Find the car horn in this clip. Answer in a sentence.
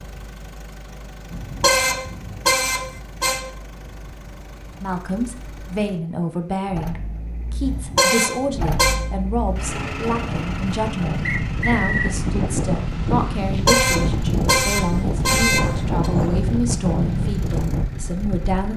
You can hear the car horn from 1.3 to 3.4 s, from 7.7 to 8.9 s and from 13.4 to 16.1 s.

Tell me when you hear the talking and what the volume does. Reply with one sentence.
The talking can be heard from 4.8 to 18.7 s, at a steady volume.